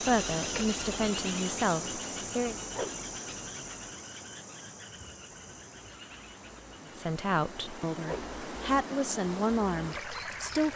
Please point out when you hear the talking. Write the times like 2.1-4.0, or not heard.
0.0-2.5, 6.8-10.7.